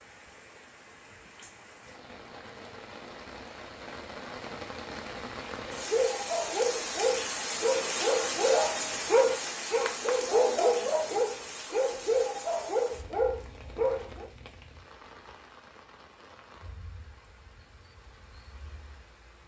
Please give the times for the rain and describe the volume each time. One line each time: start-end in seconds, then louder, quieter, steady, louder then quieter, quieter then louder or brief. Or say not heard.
0.0-19.4 louder then quieter.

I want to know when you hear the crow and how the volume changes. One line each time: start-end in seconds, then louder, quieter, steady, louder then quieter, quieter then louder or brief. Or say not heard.
not heard.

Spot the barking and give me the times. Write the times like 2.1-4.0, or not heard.
5.7-14.3.